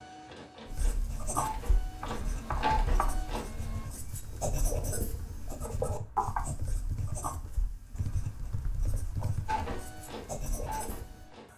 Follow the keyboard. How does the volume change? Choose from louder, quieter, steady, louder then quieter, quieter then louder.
quieter then louder.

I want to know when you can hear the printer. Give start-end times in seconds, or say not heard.
0.0-3.9, 9.4-11.5.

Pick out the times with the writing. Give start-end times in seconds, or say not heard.
0.7-11.3.